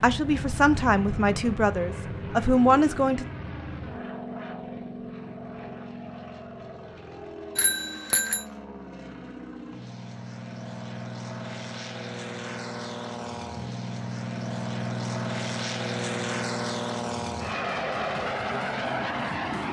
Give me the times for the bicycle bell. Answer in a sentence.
You can hear the bicycle bell from 7.5 to 8.4 s.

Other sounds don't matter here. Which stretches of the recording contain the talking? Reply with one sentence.
The talking can be heard from 0.0 to 3.2 s.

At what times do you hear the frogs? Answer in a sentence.
You can't hear the frogs here.